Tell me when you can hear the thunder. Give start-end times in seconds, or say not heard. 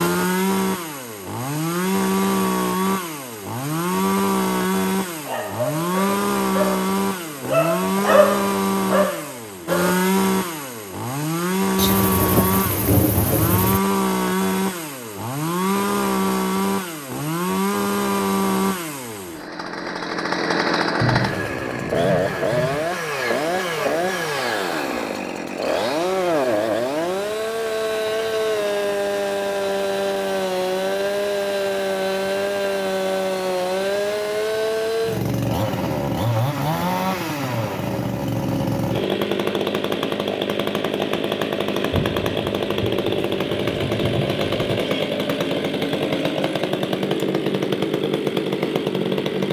11.8-13.8, 21.0-22.9, 41.9-44.9.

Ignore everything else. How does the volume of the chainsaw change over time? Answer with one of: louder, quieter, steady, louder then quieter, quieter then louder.
steady.